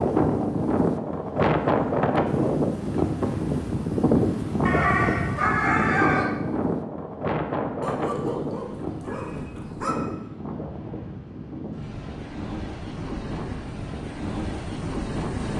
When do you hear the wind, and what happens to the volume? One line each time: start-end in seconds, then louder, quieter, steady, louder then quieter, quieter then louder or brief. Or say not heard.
0.0-15.5 quieter.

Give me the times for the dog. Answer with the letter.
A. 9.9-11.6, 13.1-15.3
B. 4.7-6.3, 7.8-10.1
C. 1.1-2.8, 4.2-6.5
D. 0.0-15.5
B.